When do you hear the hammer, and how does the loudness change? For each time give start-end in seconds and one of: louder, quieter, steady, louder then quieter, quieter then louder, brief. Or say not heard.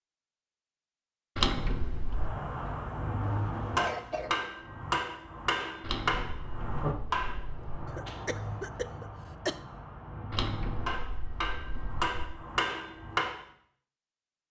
2.0-13.4 quieter then louder.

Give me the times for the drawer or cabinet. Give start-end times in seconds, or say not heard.
1.4-2.3, 5.8-7.8, 10.3-12.3.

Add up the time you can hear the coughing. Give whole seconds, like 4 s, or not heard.
3 s.